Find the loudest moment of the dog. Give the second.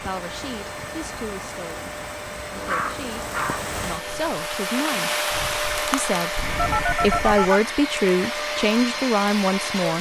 3 s.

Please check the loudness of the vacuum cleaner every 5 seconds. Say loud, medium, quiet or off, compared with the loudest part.
medium, loud.